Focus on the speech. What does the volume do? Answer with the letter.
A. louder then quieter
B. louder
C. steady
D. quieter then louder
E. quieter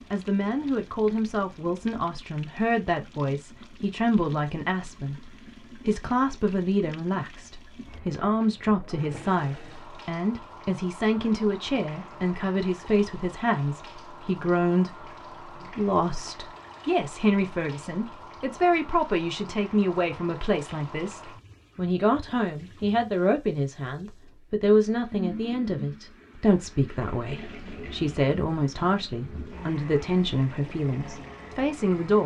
C.